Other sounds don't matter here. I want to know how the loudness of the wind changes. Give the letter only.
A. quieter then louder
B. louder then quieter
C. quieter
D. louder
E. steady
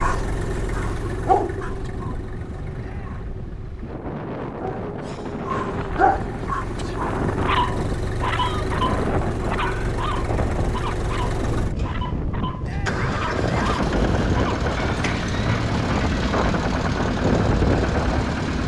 D.